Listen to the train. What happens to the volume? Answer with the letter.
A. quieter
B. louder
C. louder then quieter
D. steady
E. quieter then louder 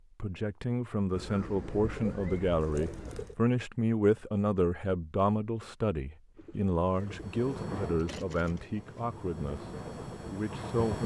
E.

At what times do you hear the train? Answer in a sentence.
The train can be heard from 6.9 to 11.0 s.